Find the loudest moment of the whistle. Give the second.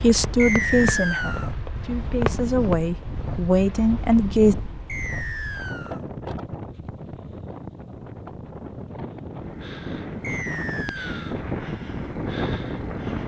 1 s.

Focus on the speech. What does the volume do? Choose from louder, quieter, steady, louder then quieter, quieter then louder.
quieter then louder.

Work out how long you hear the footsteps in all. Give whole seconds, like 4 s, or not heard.
not heard.